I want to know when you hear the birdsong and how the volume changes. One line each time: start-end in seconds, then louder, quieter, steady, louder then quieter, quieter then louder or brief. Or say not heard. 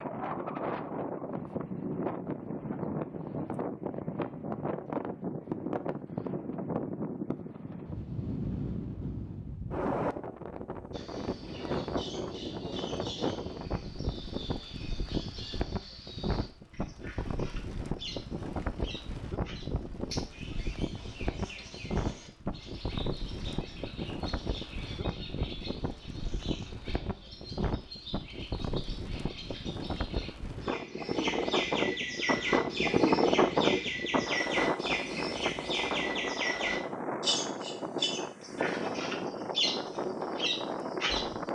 10.9-41.4 louder.